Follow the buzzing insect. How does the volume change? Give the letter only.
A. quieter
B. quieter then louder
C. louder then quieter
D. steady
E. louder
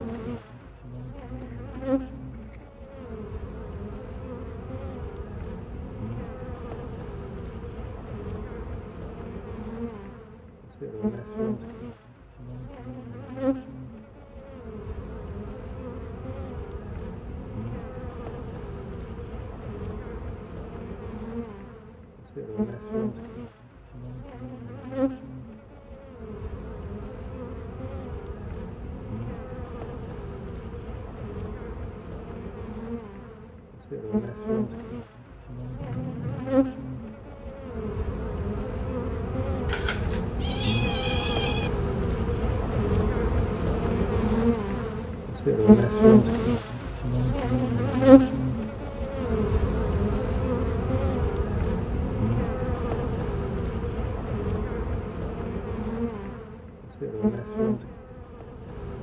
E.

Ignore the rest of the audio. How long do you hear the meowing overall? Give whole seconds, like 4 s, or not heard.
4 s.